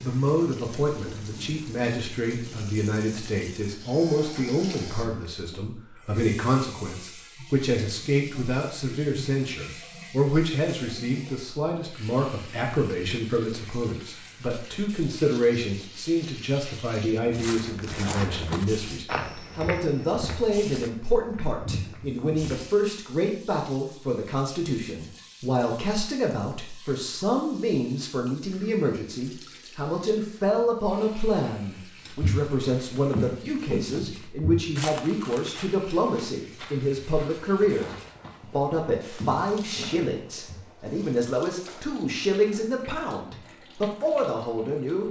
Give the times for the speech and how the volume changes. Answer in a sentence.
You can hear the speech from 0.0 to 45.0 s, at a steady volume.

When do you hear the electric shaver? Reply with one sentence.
The electric shaver can't be heard in this clip.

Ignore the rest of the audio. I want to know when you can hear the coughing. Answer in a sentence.
You can't hear the coughing here.